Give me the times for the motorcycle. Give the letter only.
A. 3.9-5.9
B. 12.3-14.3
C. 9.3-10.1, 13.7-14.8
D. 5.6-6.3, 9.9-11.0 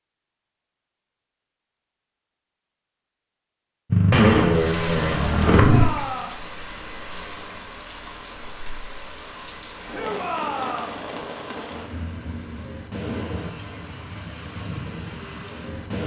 A.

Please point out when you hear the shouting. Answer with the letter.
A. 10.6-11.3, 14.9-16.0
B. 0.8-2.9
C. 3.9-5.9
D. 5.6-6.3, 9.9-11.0
D.